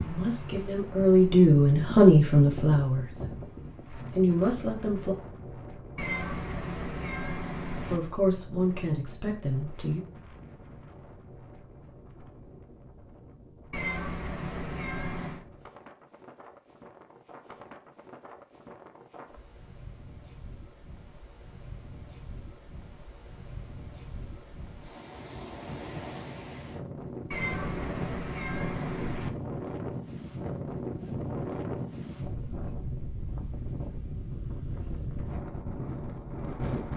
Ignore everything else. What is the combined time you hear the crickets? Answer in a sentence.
You can't hear the crickets here.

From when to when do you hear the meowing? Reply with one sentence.
You can hear the meowing from 6.0 to 8.0 s, from 13.7 to 15.4 s and from 27.3 to 29.3 s.